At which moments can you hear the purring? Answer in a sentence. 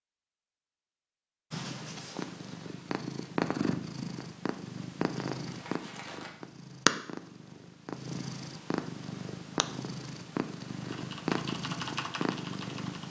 The purring can be heard from 1.5 to 13.0 s.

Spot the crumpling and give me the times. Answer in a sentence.
You can hear the crumpling from 5.3 to 6.3 s.